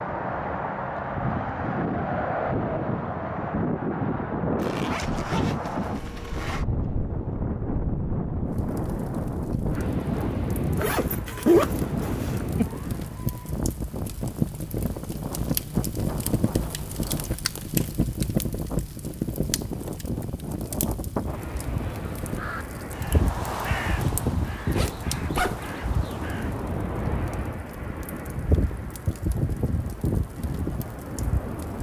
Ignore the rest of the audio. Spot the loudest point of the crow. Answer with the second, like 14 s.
24 s.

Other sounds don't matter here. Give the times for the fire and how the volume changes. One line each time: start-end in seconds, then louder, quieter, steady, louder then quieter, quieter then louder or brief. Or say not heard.
8.4-31.7 louder then quieter.